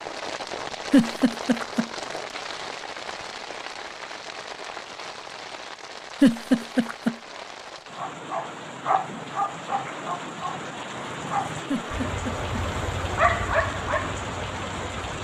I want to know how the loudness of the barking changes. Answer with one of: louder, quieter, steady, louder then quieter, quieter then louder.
quieter then louder.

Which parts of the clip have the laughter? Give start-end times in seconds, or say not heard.
0.9-1.9, 6.2-7.2, 11.7-12.4.